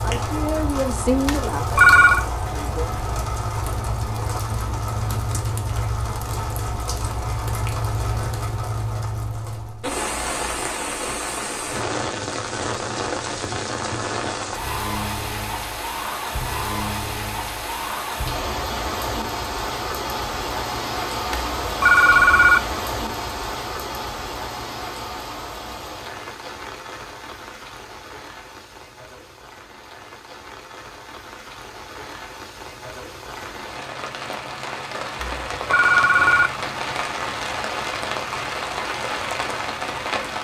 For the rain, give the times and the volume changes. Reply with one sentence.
The rain can be heard from 0.0 to 40.3 s, getting quieter then louder.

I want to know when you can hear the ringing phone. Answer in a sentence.
You can hear the ringing phone from 1.2 to 2.2 s, from 21.3 to 22.6 s and from 35.2 to 36.5 s.